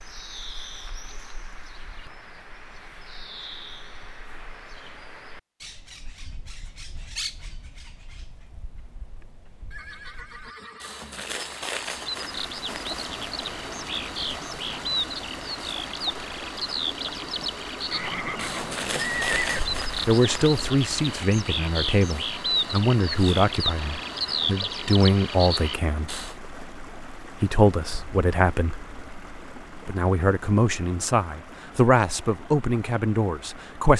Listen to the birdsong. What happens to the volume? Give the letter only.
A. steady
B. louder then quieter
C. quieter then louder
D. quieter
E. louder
E.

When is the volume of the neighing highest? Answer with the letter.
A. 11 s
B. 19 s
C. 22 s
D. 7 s
B.